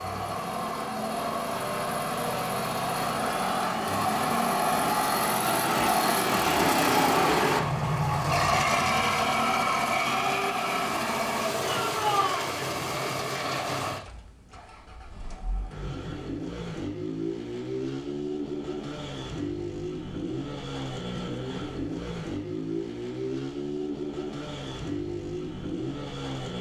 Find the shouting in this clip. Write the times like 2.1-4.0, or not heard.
11.6-12.5.